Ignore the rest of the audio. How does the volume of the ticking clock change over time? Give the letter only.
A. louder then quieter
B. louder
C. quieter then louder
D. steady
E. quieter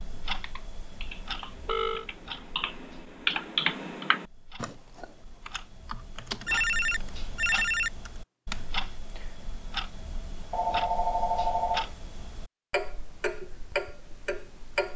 C.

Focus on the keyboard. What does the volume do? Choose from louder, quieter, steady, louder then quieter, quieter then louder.
louder then quieter.